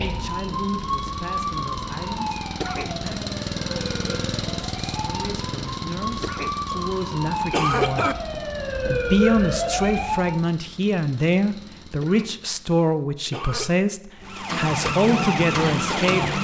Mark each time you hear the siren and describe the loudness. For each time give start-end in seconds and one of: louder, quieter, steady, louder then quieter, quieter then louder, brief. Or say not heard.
0.0-10.4 quieter then louder
14.2-16.3 brief.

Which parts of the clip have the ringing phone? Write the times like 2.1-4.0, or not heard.
not heard.